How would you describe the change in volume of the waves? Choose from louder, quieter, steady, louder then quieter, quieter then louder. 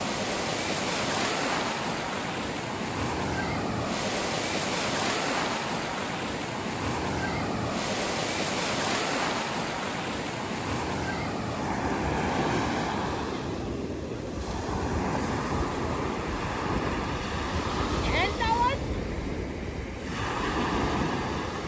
steady.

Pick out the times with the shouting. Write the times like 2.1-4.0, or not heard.
18.0-18.9.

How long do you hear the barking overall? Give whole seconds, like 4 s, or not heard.
not heard.